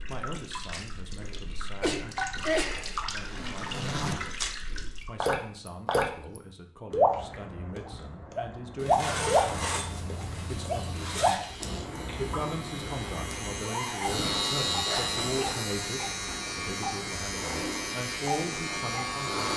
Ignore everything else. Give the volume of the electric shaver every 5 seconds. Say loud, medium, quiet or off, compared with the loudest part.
off, off, loud, loud.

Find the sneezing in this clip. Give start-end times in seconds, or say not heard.
1.8-2.9.